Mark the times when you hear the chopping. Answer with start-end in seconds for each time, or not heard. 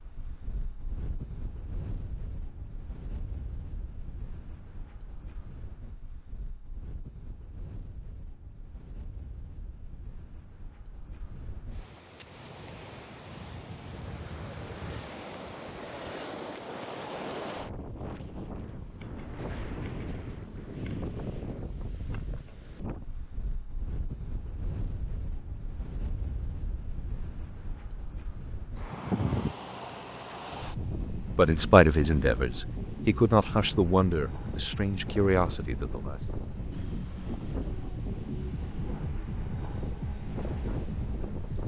not heard.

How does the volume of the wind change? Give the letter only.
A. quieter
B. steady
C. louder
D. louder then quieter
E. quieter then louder
C.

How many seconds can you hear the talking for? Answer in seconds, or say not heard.
5 s.